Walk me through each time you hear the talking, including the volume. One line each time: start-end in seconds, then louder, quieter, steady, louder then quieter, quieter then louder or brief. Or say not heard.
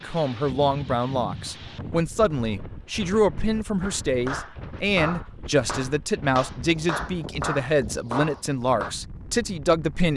0.0-10.1 steady.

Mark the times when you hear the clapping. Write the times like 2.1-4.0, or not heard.
3.8-8.9.